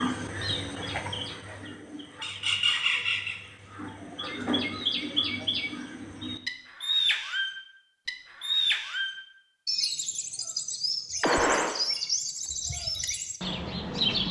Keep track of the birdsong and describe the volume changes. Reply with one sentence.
The volume of the birdsong stays about the same.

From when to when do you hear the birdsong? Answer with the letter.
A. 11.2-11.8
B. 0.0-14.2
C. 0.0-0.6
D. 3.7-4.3
B.